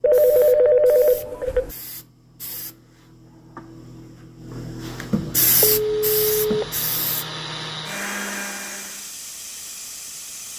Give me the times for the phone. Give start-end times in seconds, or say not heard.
0.0-1.8, 5.6-6.7.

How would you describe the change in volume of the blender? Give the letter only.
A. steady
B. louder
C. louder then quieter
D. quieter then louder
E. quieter
B.